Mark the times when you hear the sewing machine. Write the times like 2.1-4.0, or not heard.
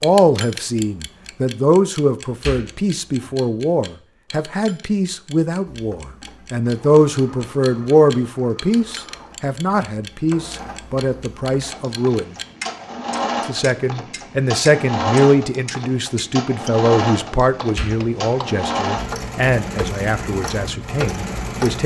5.7-21.8.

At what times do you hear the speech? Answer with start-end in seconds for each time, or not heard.
0.0-12.3, 13.4-21.8.